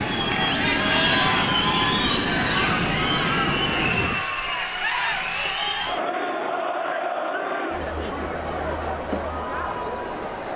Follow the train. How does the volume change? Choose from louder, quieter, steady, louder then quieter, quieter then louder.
steady.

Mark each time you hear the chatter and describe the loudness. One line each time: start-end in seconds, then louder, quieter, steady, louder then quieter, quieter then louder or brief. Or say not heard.
0.0-10.5 quieter.